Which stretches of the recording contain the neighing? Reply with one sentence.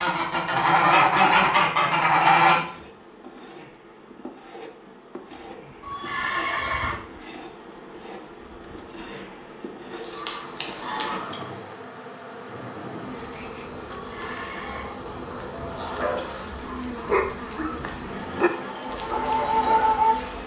The neighing can be heard from 5.8 to 7.0 s and from 13.9 to 14.9 s.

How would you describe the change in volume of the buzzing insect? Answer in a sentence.
The loudness of the buzzing insect goes up.